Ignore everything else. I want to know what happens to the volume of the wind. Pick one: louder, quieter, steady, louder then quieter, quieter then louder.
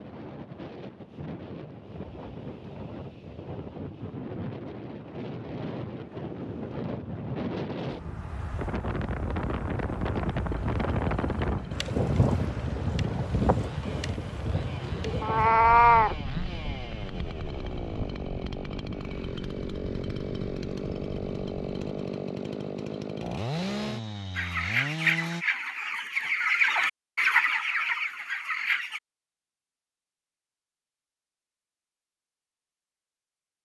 louder then quieter.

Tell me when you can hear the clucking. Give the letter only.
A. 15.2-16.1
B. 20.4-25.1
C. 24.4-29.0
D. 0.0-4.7
C.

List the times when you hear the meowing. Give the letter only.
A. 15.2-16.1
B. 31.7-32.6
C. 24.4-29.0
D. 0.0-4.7
A.